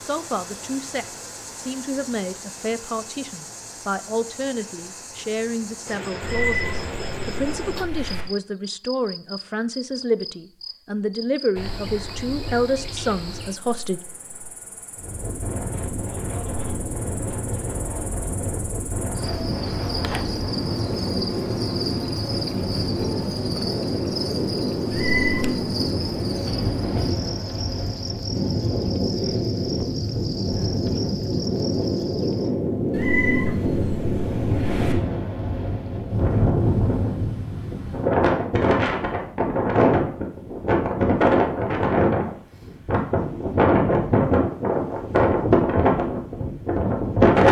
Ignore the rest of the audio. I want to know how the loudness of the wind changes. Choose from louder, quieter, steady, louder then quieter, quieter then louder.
louder.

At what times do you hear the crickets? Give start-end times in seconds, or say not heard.
0.0-32.5.